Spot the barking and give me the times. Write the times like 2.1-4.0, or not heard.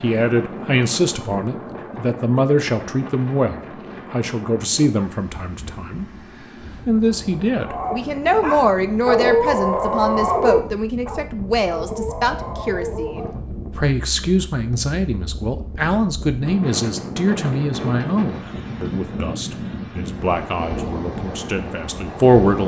7.6-13.3.